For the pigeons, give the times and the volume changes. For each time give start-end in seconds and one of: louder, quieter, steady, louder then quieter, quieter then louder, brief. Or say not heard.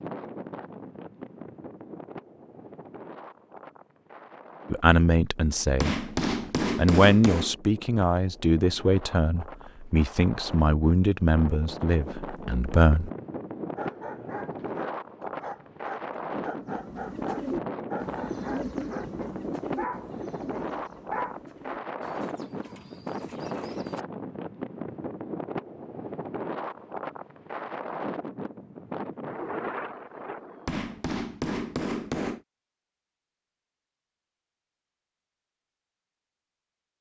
16.6-24.1 quieter.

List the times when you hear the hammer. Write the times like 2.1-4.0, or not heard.
5.8-7.5, 30.6-32.4.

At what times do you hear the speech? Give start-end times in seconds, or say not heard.
4.7-6.0, 6.8-13.1.